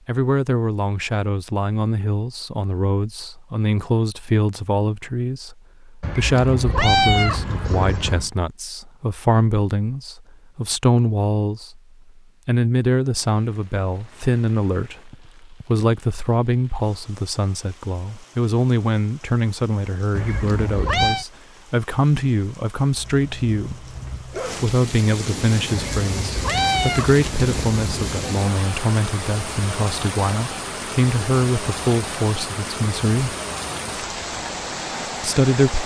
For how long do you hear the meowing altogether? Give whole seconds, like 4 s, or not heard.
6 s.